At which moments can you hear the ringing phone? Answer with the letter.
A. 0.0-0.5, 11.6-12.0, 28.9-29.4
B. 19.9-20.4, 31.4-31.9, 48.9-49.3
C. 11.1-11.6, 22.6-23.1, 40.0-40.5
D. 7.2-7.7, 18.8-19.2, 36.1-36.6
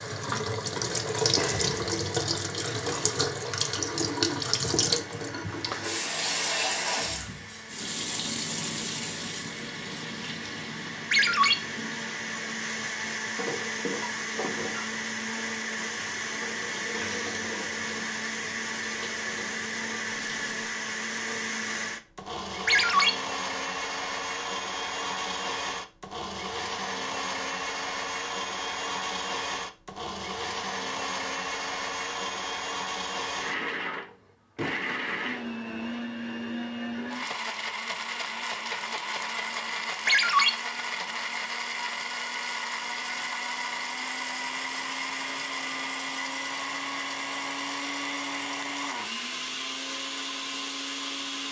C.